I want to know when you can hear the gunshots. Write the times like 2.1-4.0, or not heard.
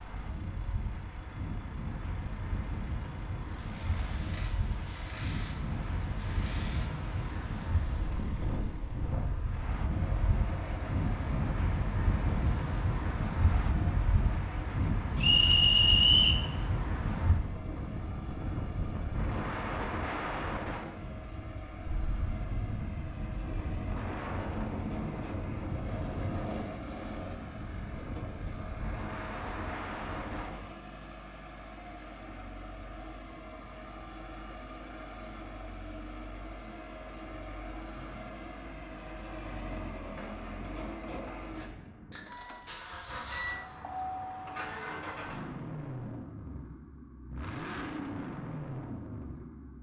39.7-42.3.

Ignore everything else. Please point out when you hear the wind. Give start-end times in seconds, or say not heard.
0.0-30.6.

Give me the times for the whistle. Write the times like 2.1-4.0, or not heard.
15.2-16.4.